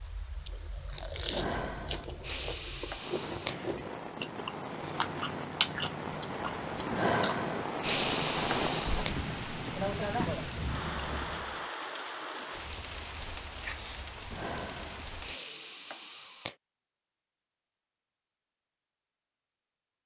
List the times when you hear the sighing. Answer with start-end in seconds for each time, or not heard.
1.3-3.8, 6.9-9.2, 14.3-16.6.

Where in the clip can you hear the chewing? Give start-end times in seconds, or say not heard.
0.4-11.7.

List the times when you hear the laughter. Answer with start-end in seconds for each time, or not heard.
not heard.